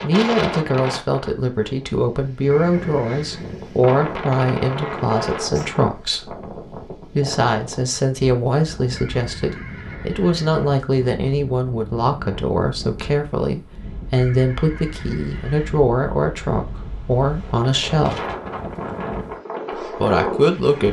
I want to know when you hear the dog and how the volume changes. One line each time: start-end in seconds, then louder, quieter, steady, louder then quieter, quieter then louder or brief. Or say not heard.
not heard.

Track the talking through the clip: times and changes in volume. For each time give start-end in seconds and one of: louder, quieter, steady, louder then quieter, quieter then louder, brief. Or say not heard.
0.0-18.2 steady
19.8-20.8 brief.